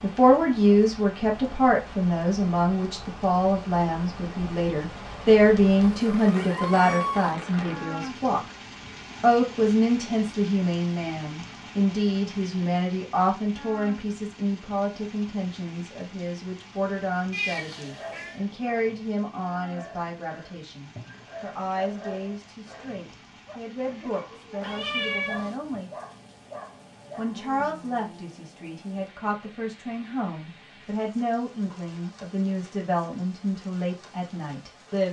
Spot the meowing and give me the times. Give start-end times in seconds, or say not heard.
5.8-7.3, 17.3-18.4, 24.6-25.6.